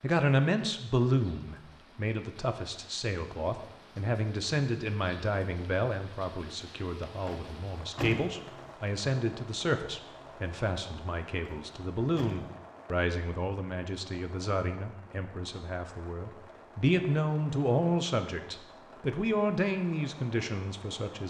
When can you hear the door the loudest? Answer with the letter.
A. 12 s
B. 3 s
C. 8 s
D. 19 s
C.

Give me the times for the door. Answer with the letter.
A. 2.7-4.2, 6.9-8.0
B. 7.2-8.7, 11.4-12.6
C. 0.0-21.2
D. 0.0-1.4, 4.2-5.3
B.